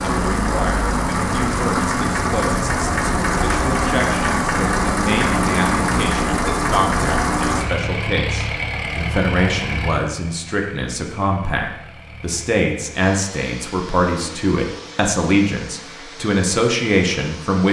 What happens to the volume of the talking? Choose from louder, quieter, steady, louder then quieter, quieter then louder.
louder.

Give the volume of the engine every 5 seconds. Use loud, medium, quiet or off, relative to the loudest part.
loud, loud, quiet, quiet.